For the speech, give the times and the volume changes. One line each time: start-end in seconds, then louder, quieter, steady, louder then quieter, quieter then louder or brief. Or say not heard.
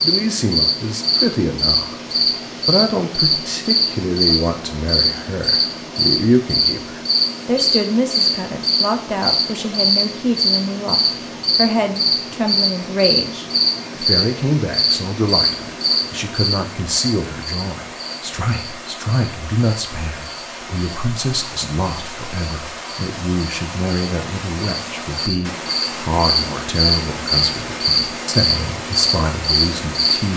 0.0-2.0 brief
2.6-30.3 steady.